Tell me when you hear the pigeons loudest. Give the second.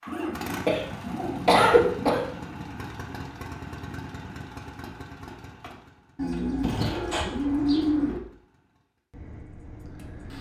8 s.